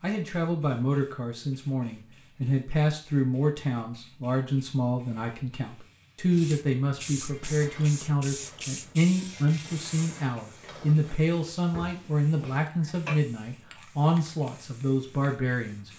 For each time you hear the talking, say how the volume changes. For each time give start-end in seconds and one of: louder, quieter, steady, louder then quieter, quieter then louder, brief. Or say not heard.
0.0-15.9 steady.